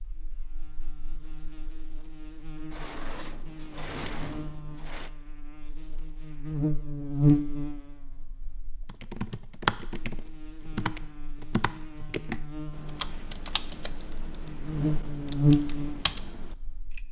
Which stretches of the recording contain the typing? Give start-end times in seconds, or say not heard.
8.8-17.0.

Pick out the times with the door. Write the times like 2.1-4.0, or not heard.
2.7-5.1.